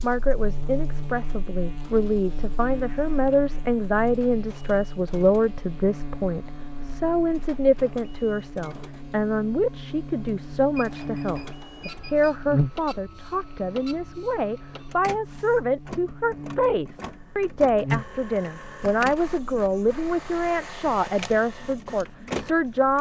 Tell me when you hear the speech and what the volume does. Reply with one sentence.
The speech can be heard from 0.0 to 22.9 s, at a steady volume.